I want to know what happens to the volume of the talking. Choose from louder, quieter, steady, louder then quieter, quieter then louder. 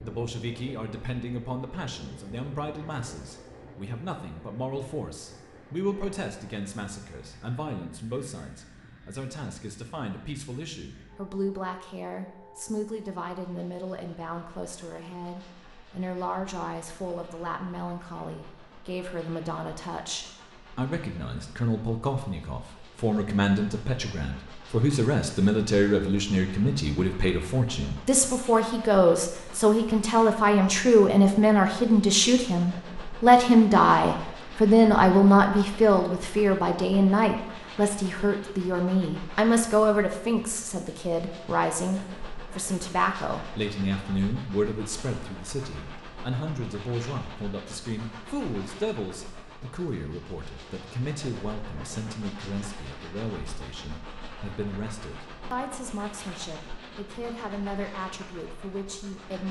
louder then quieter.